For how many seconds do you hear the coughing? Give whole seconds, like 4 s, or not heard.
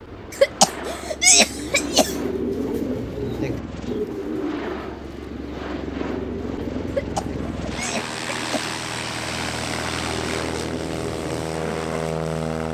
4 s.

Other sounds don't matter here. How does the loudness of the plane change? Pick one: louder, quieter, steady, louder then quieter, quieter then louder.
louder.